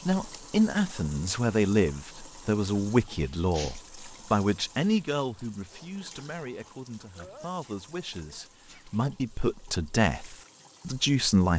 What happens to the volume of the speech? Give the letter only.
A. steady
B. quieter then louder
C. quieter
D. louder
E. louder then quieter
B.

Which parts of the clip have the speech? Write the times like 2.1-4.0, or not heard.
0.1-11.5.